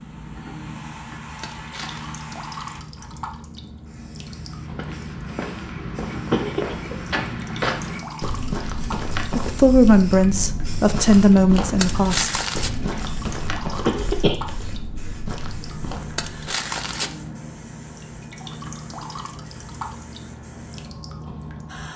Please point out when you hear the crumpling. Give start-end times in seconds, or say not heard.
1.4-2.0, 11.8-12.8, 16.1-17.1.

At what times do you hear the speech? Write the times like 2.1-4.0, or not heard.
9.3-12.3.